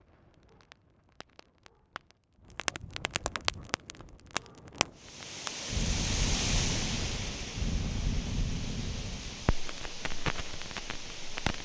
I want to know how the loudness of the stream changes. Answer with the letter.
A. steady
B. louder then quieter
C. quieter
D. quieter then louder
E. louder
C.